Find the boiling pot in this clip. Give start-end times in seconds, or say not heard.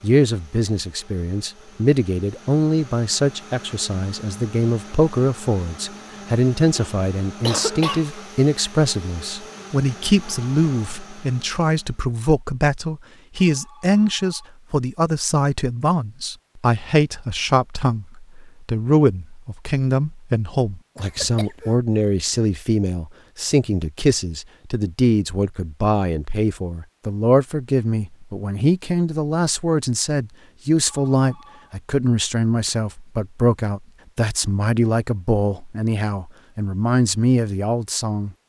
not heard.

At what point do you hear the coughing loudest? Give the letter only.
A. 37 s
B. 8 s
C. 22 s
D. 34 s
B.